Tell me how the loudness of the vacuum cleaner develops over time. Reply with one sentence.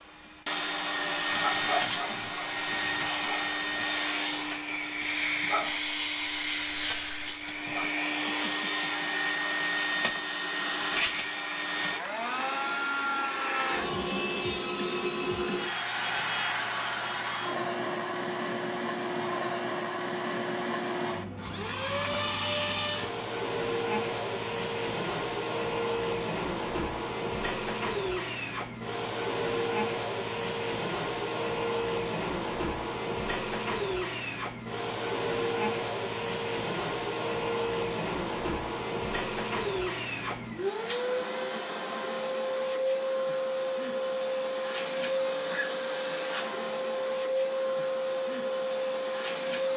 The loudness of the vacuum cleaner stays about the same.